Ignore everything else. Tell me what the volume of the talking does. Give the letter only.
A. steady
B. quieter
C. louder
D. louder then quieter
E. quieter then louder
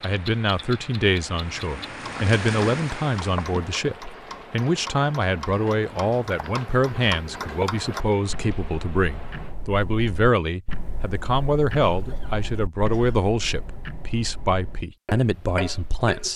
A.